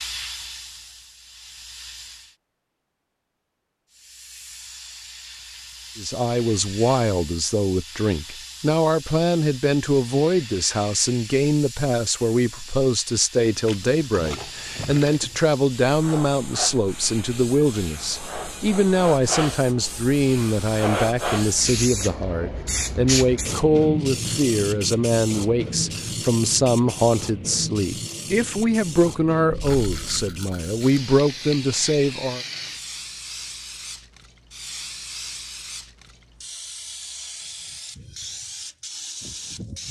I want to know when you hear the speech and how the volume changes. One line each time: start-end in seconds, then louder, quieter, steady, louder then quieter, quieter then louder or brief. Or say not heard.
6.0-32.4 steady.